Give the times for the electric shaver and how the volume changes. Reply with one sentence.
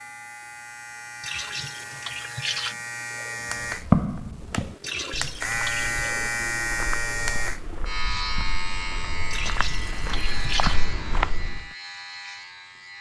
You can hear the electric shaver from 0.0 to 12.9 s, getting louder then quieter.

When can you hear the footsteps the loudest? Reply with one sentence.
The loudest moment of the footsteps is at 4 seconds.